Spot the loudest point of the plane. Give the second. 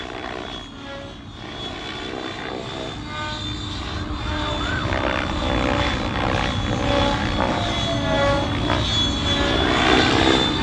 10 s.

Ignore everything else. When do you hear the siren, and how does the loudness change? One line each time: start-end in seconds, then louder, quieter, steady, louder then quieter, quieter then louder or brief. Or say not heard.
0.0-10.5 louder.